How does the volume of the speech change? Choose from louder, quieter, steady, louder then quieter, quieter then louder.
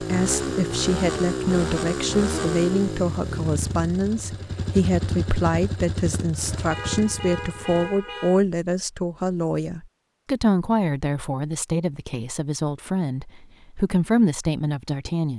steady.